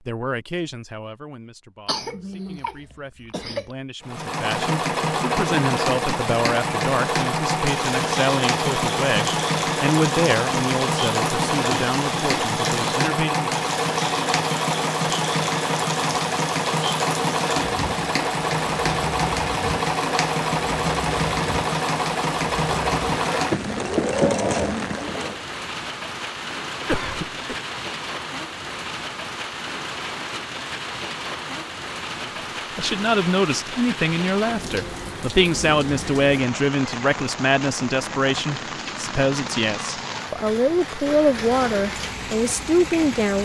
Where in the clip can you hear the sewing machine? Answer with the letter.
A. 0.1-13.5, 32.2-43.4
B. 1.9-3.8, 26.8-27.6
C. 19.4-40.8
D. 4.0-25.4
D.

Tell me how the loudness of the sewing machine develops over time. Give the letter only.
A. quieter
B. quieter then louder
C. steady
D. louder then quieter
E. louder
C.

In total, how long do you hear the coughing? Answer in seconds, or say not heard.
3 s.